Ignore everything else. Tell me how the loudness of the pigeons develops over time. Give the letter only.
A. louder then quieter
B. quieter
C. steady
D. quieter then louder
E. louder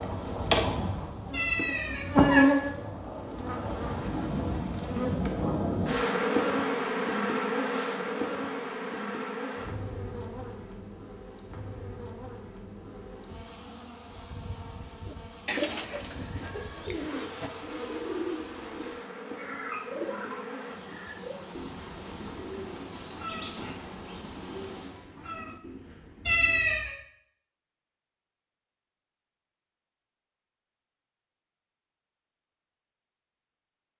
B.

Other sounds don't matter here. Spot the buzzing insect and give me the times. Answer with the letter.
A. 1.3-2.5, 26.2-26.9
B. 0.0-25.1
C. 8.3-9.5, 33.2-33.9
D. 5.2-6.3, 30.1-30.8
B.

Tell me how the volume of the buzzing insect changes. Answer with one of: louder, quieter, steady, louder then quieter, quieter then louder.
quieter.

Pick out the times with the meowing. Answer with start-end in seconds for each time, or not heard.
1.3-2.5, 26.2-26.9.